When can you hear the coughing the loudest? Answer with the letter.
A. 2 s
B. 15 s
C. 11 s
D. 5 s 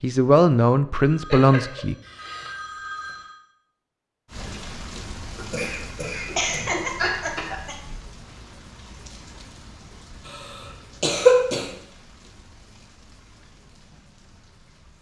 C.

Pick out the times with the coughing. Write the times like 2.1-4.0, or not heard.
1.3-2.5, 5.3-7.8, 11.0-11.7.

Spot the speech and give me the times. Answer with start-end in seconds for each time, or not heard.
0.0-1.9.